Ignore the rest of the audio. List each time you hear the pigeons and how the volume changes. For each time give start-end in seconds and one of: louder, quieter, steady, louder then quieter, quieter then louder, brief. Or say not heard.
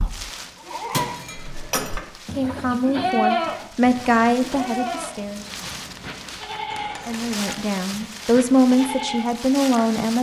not heard.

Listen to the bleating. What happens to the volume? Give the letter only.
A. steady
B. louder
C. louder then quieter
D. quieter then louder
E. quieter
C.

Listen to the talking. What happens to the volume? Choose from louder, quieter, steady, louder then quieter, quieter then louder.
quieter then louder.